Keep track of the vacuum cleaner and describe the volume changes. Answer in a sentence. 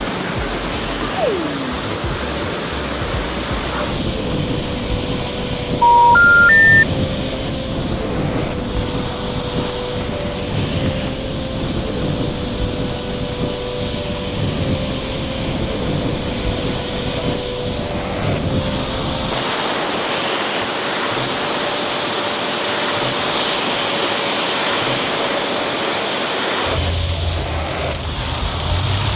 The loudness of the vacuum cleaner goes up.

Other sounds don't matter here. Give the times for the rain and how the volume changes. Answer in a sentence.
You can hear the rain from 0.0 to 29.1 s, at a steady volume.